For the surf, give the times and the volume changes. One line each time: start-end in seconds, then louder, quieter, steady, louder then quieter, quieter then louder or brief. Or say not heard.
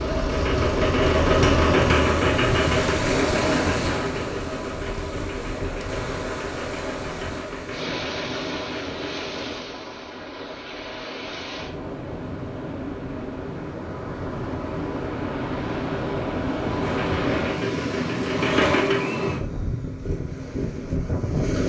0.0-21.6 quieter then louder.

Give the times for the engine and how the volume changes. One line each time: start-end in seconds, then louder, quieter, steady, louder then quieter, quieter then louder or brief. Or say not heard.
0.0-9.7 quieter
16.8-19.1 brief.